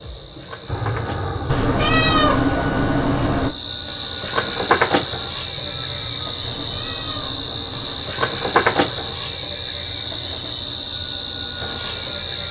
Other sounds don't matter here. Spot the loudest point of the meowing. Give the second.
2 s.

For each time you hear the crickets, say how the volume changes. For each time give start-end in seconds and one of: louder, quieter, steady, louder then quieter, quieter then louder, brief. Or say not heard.
0.0-12.4 louder.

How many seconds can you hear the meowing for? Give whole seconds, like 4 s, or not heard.
4 s.